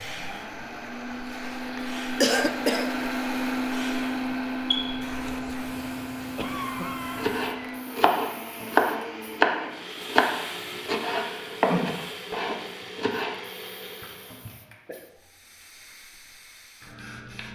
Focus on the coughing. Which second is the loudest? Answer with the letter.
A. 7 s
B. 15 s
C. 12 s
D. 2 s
D.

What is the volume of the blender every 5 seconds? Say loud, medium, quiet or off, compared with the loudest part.
loud, medium, medium, off.